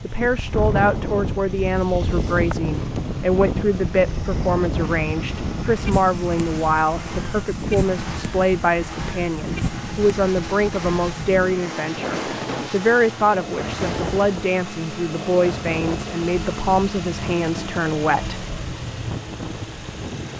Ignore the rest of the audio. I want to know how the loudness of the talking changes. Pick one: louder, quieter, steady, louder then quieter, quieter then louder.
steady.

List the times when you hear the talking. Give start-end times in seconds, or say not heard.
0.0-18.4.